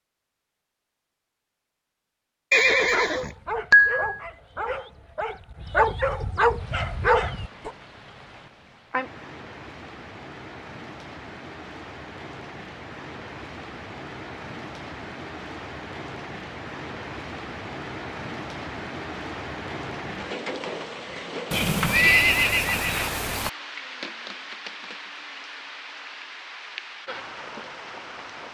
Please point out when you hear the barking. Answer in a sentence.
The barking can be heard from 2.6 to 7.7 s.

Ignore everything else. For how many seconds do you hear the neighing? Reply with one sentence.
The neighing can be heard for 4 seconds in total.